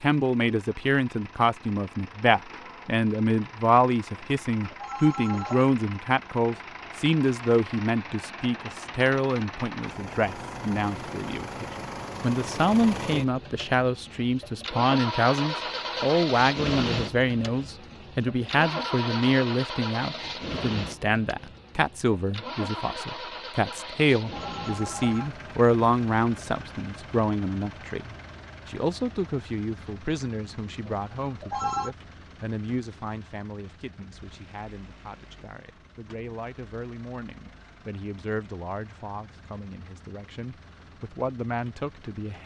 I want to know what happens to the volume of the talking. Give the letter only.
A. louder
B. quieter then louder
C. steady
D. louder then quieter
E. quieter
E.